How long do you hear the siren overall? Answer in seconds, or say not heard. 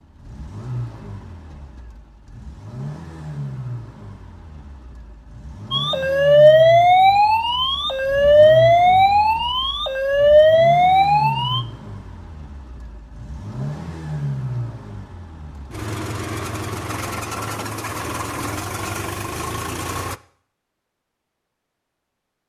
6 s.